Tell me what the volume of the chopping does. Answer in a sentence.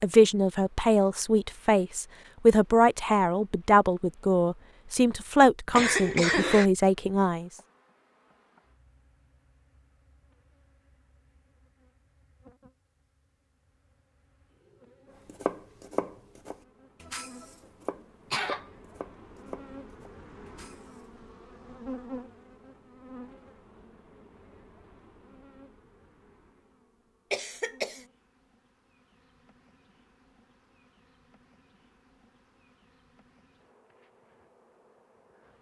The loudness of the chopping goes down.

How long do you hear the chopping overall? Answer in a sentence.
You can hear the chopping for 6 seconds altogether.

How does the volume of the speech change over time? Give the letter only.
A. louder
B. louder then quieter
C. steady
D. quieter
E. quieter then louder
C.